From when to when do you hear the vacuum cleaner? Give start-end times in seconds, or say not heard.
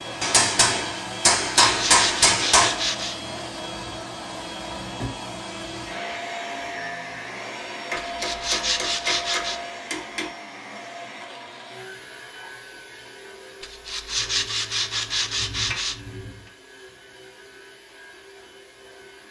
0.0-19.2.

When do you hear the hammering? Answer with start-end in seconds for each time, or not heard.
0.2-2.8, 7.9-10.3, 14.2-16.4.